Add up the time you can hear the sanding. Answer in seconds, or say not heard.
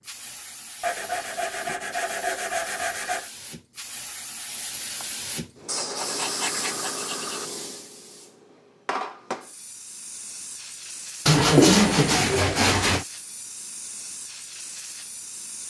6 s.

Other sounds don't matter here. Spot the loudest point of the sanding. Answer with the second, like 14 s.
12 s.